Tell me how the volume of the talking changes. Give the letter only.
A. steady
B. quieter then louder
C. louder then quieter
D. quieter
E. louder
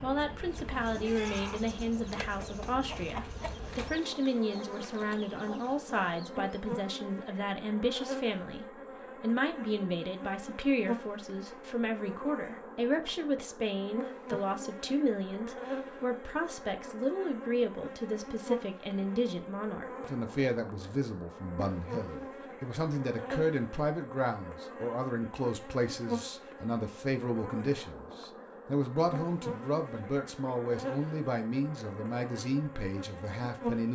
A.